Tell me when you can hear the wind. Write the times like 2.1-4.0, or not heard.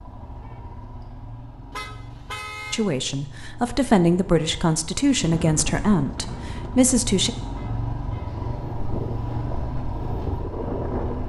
5.2-11.2.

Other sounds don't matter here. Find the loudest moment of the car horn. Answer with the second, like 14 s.
2 s.